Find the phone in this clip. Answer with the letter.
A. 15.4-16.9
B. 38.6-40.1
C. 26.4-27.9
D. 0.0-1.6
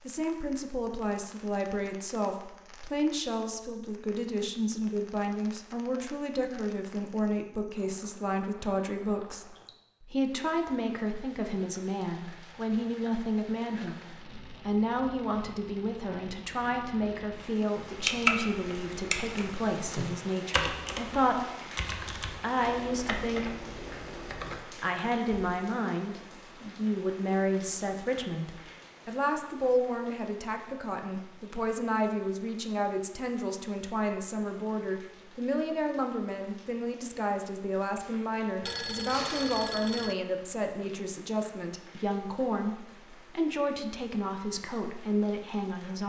B.